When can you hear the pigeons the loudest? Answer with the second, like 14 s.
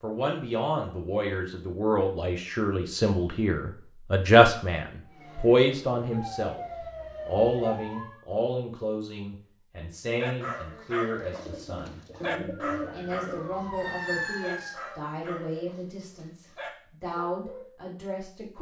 13 s.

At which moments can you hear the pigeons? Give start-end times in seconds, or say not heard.
11.3-13.4.